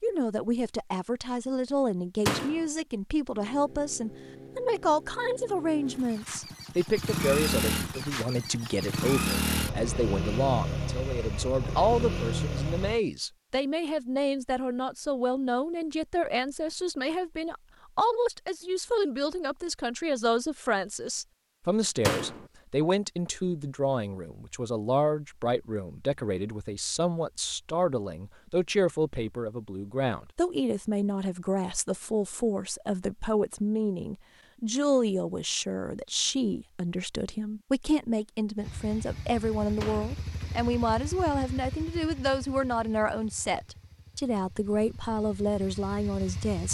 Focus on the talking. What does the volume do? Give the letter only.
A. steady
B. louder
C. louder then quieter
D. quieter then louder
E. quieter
A.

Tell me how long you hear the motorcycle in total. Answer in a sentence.
The motorcycle can be heard for 18 seconds in total.